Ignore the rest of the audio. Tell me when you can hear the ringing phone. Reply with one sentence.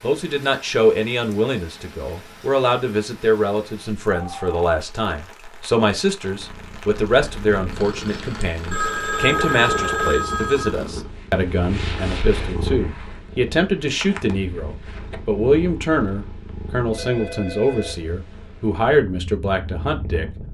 The ringing phone can be heard from 4.1 to 4.6 s, from 8.7 to 10.7 s and from 16.9 to 18.0 s.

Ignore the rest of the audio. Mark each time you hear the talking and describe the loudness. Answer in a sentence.
The talking can be heard from 0.0 to 20.2 s, at a steady volume.